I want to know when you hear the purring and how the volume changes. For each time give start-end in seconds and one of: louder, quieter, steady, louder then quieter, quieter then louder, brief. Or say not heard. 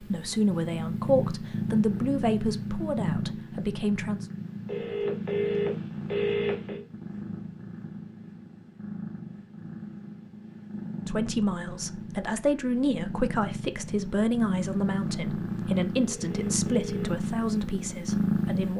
0.0-18.7 quieter then louder.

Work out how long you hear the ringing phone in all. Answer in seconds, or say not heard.
3 s.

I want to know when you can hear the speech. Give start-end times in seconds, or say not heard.
0.0-4.2, 11.1-18.7.